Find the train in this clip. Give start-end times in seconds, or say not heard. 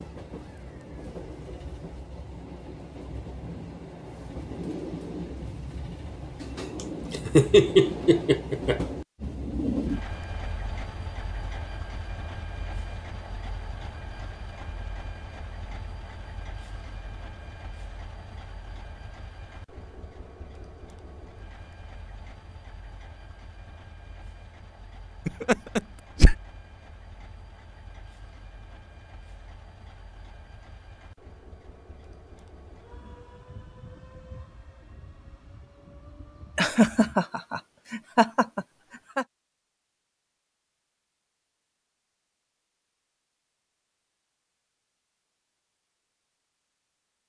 0.0-37.1.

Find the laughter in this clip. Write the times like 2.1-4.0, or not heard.
7.1-8.8, 25.2-26.4, 36.5-39.2.